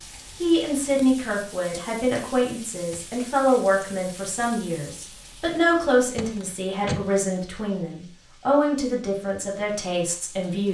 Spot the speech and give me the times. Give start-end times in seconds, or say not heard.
0.4-10.6.